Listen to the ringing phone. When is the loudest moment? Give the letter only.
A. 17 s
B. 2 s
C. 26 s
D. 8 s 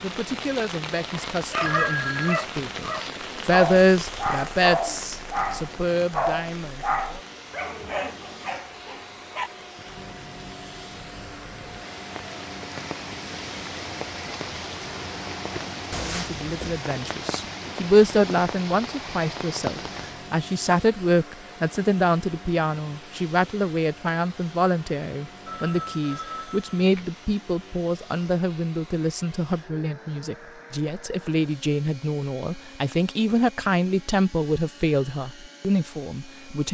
B.